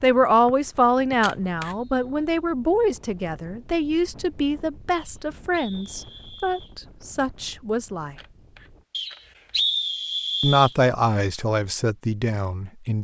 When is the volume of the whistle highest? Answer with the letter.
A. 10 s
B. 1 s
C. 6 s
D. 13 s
A.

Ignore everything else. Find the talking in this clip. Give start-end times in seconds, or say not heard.
0.0-8.2, 10.4-12.9.